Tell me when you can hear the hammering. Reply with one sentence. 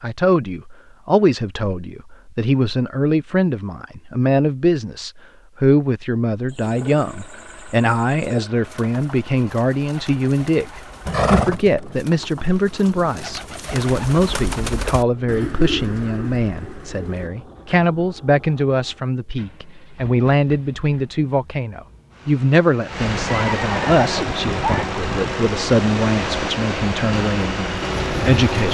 The hammering can't be heard in this clip.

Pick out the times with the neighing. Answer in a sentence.
You can hear the neighing from 11.1 to 11.8 s and from 23.2 to 24.9 s.